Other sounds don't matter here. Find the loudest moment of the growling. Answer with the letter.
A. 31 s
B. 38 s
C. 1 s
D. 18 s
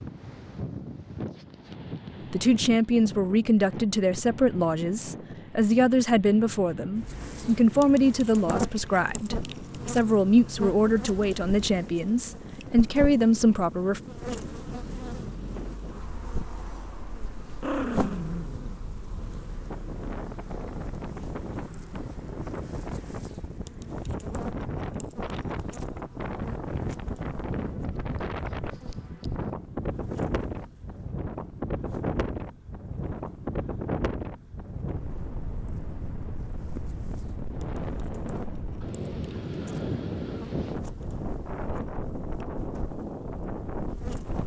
D.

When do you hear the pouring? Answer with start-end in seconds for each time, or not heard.
not heard.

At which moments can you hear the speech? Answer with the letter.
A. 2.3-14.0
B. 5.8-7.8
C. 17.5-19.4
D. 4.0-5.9
A.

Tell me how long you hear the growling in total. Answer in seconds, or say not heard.
2 s.